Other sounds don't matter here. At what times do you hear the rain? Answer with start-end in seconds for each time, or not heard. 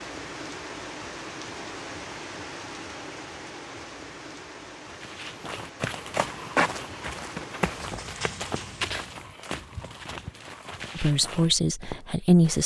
0.0-9.3.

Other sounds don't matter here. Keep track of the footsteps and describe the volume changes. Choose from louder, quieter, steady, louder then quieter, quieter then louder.
quieter.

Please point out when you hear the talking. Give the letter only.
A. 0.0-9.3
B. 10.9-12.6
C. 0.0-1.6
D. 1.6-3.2
B.